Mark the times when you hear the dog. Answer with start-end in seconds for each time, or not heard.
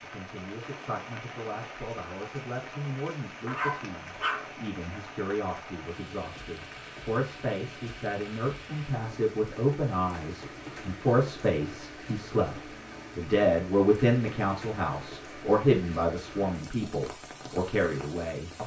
3.5-4.5.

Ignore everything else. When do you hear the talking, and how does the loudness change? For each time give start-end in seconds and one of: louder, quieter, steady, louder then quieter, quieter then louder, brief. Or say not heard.
0.0-18.6 louder.